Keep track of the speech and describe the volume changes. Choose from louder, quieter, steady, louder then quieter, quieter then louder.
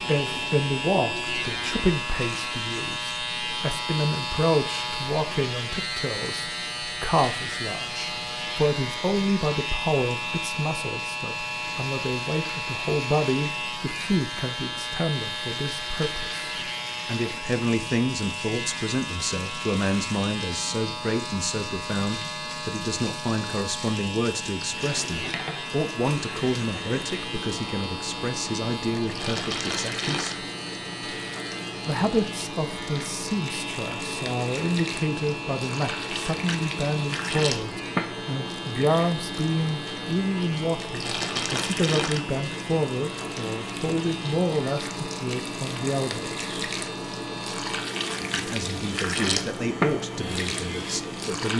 steady.